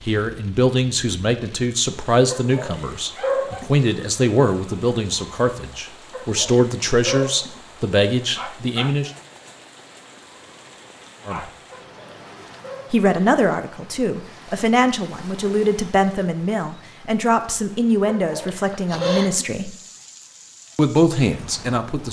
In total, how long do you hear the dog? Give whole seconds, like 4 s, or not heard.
6 s.